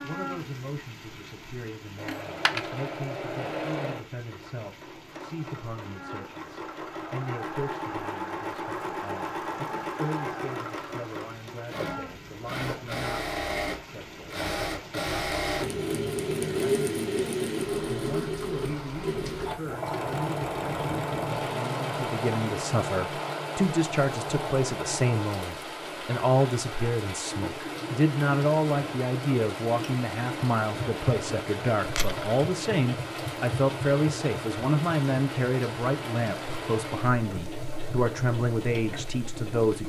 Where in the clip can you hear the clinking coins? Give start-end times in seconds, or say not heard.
2.0-2.8, 31.9-32.5.